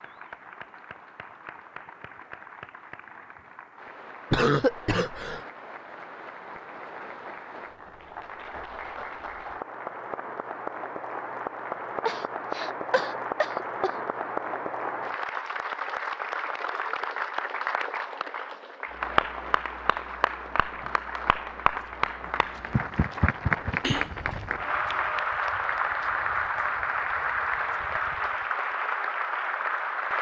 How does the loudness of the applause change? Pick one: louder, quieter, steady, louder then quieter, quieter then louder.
louder.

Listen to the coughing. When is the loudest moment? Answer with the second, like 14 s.
5 s.